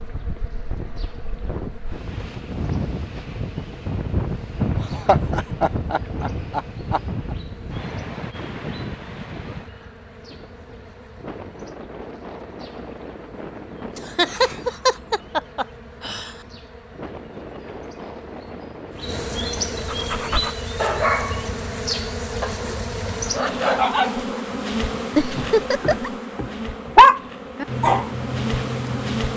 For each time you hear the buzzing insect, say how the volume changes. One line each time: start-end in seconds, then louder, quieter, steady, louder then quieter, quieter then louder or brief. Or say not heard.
0.0-29.3 louder.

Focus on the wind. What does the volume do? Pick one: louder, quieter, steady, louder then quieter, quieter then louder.
quieter.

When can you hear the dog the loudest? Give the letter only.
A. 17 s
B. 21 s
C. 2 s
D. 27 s
D.